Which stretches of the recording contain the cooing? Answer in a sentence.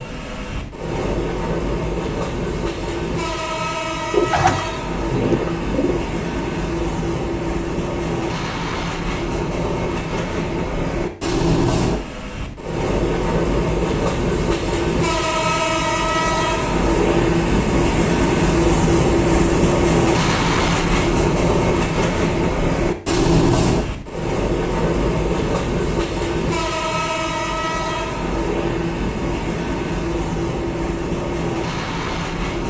You can hear the cooing from 4.1 to 6.0 s.